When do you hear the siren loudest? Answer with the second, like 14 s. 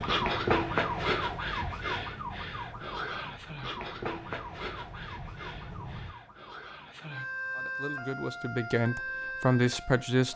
1 s.